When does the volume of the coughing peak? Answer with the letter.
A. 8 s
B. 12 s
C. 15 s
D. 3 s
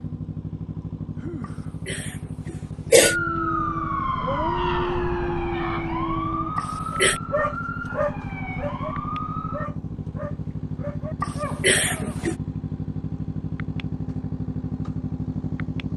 D.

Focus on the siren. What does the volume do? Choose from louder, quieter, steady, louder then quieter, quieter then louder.
quieter.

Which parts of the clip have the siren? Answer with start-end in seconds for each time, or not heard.
3.0-9.7.